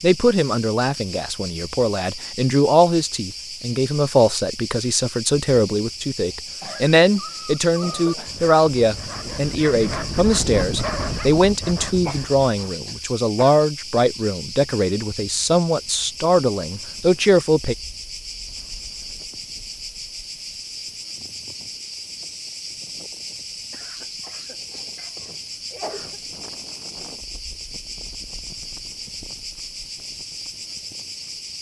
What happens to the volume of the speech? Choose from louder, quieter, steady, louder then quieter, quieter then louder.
steady.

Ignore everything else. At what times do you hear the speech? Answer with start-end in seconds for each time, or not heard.
0.0-17.8.